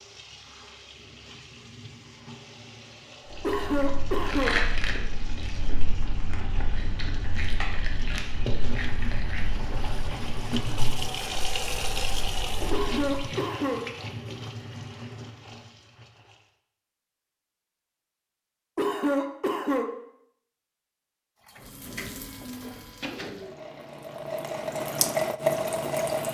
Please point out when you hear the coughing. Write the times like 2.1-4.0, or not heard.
3.4-4.7, 12.7-13.9, 18.8-19.9.